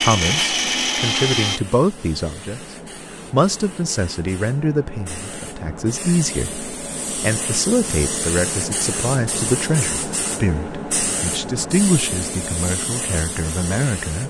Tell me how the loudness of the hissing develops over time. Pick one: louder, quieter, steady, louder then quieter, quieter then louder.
louder.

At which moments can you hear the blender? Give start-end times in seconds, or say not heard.
0.0-1.6.